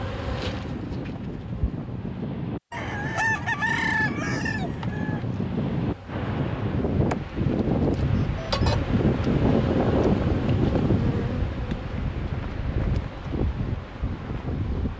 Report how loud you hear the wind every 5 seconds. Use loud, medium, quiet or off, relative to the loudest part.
medium, loud, loud.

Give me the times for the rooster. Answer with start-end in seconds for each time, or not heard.
2.7-5.2.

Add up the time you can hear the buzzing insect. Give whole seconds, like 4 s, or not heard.
13 s.